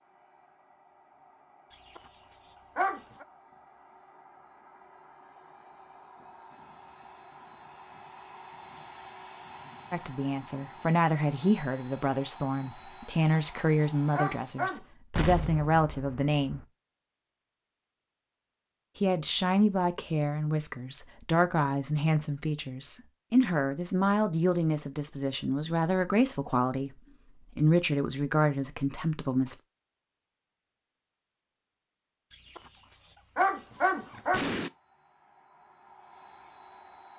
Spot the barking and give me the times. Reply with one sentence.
The barking can be heard from 1.9 to 3.2 s, from 13.1 to 14.8 s and from 32.5 to 34.5 s.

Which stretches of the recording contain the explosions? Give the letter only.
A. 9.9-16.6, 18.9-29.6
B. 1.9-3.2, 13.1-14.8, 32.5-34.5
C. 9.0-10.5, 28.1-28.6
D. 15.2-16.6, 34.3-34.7
D.